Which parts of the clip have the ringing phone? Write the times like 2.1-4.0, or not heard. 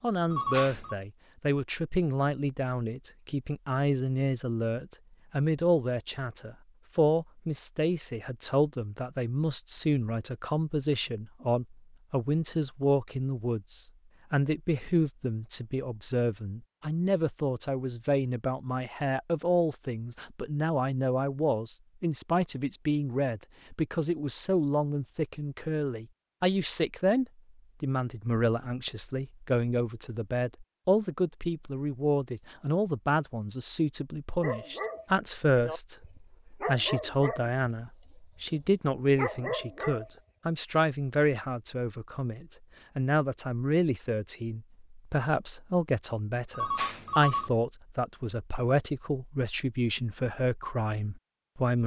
0.3-0.9, 46.5-47.5.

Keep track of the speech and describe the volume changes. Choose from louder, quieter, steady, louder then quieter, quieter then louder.
steady.